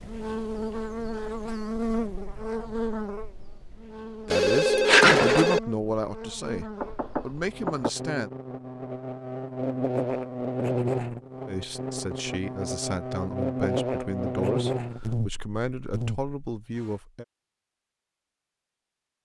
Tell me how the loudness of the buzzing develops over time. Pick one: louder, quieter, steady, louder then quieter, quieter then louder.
quieter then louder.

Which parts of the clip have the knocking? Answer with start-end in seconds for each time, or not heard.
6.8-7.9.